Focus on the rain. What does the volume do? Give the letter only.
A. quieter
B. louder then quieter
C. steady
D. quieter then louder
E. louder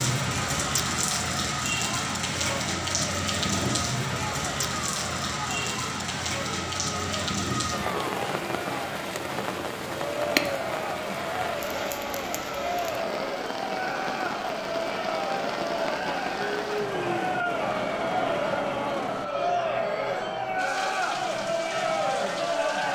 A.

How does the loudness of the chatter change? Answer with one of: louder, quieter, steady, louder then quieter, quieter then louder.
louder.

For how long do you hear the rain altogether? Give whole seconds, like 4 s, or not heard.
23 s.